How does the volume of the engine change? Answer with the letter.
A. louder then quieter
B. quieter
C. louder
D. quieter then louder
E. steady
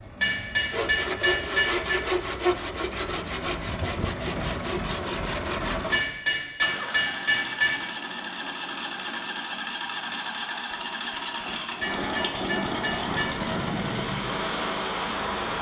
C.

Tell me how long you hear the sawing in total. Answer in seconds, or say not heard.
5 s.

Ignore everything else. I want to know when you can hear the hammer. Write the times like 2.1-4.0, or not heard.
0.2-2.0, 5.9-7.9, 11.8-13.4.